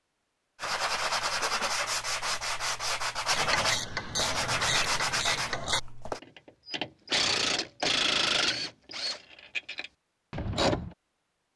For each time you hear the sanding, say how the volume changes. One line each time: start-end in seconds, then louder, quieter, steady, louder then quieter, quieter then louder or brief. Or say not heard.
0.6-6.2 steady.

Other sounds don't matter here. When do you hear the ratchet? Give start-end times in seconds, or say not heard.
3.3-10.9.